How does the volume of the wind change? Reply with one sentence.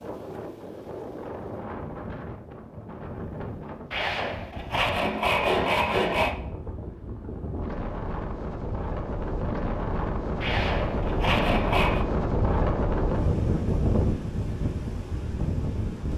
The volume of the wind goes up.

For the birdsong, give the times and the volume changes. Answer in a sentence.
The birdsong can't be heard in this clip.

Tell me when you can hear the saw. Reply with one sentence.
The saw can be heard from 3.9 to 6.3 s and from 10.4 to 12.1 s.